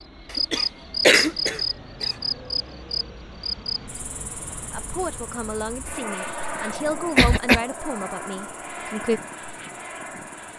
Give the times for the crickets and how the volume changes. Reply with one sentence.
You can hear the crickets from 0.0 to 10.5 s, getting quieter.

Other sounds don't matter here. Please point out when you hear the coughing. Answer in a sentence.
The coughing can be heard from 0.3 to 2.1 s and from 7.0 to 7.6 s.